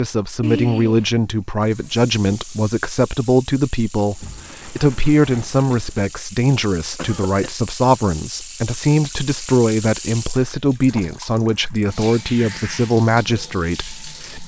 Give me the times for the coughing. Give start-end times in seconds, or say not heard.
0.4-1.1, 7.0-7.5, 10.5-11.2.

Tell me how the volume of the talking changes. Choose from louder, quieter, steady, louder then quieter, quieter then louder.
steady.